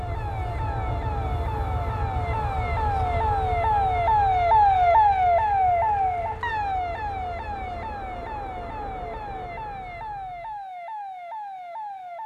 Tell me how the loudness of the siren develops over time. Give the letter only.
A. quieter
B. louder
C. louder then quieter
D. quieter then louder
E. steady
C.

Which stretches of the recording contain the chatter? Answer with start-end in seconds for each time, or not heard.
not heard.